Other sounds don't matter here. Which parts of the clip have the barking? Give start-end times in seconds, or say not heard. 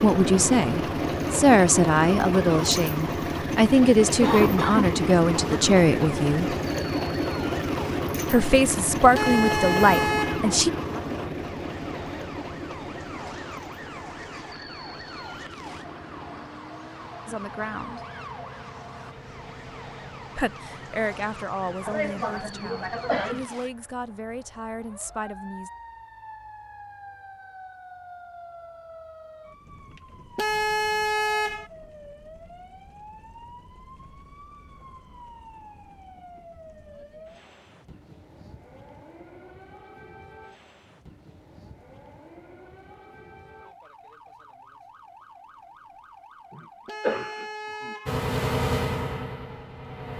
not heard.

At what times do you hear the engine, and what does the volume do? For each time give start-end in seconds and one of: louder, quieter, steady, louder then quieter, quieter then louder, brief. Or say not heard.
0.0-23.5 quieter
48.0-50.1 brief.